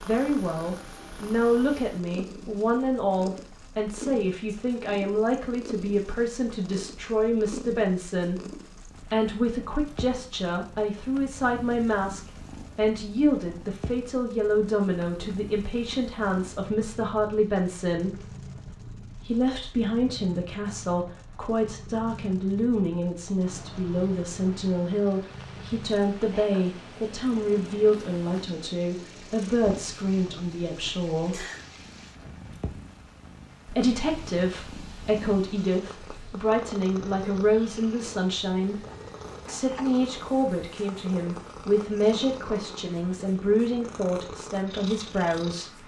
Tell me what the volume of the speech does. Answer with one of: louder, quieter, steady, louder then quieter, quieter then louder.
steady.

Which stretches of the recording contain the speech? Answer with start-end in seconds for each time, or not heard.
0.0-18.2, 19.1-31.4, 33.6-38.8, 39.5-45.8.